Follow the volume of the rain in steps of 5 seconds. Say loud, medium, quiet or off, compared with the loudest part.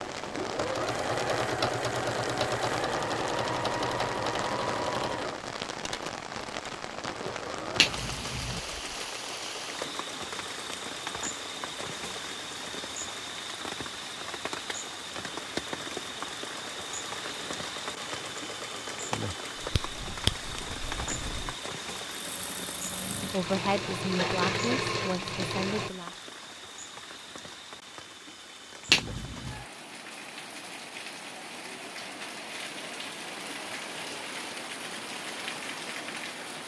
loud, loud, loud, loud, loud, medium, loud, loud.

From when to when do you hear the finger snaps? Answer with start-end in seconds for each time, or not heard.
7.8-8.6, 19.7-20.3, 28.9-29.6.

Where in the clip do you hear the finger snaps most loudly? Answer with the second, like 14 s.
29 s.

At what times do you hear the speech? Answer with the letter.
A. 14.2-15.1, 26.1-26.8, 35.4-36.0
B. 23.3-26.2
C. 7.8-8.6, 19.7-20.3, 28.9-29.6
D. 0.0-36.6
B.